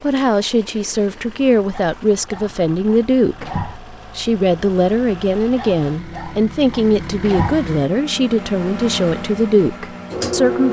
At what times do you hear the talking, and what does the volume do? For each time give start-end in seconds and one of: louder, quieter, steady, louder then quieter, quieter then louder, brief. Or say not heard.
0.0-10.6 steady.